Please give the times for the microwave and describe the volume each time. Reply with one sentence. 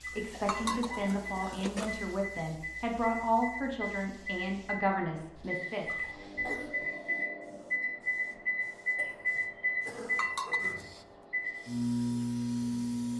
The microwave can be heard from 0.0 to 13.1 s, getting louder.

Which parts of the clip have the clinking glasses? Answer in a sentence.
You can hear the clinking glasses from 0.5 to 2.0 s and from 10.2 to 11.0 s.